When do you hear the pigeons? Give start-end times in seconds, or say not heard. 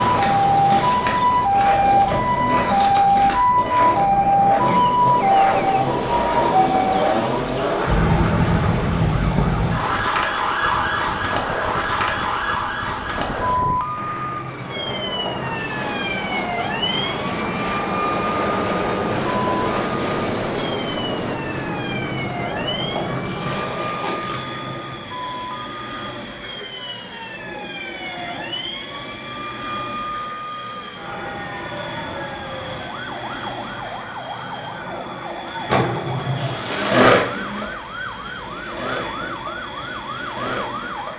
not heard.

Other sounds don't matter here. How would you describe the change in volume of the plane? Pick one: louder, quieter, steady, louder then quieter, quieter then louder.
louder then quieter.